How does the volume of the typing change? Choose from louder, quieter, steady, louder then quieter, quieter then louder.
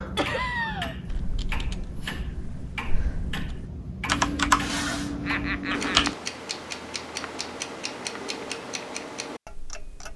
louder then quieter.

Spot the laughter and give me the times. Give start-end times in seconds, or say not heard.
0.1-0.9, 5.2-6.1.